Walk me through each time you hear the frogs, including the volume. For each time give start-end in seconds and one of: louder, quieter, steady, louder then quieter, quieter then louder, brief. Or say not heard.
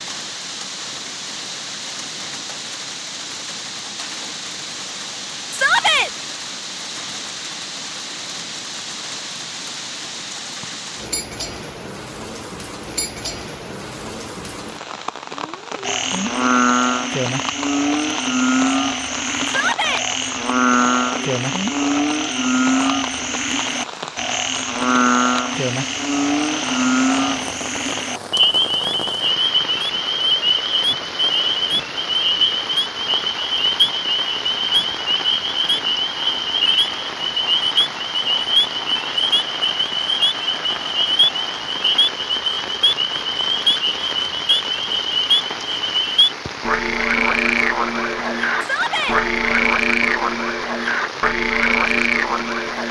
15.8-52.8 steady.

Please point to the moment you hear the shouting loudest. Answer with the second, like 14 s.
6 s.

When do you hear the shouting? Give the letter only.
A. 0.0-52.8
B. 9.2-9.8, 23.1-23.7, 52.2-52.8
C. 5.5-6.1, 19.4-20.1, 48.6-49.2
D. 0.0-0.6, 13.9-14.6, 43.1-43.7
C.